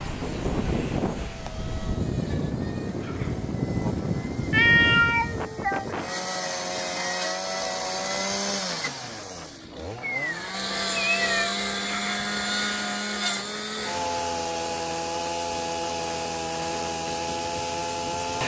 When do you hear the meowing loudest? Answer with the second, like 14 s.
5 s.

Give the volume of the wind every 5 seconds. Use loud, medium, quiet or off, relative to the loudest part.
loud, medium, quiet, quiet.